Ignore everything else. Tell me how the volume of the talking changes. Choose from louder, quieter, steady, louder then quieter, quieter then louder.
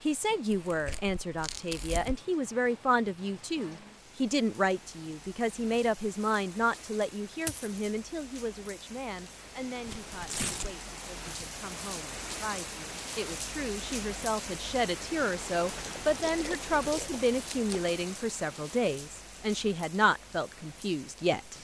quieter then louder.